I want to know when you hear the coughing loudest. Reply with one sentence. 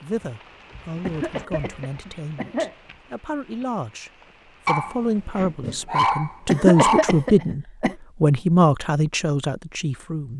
The loudest moment of the coughing is at 7 seconds.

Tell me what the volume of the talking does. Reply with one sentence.
The volume of the talking goes up.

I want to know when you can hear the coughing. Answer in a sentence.
The coughing can be heard from 1.0 to 2.8 s and from 6.5 to 8.0 s.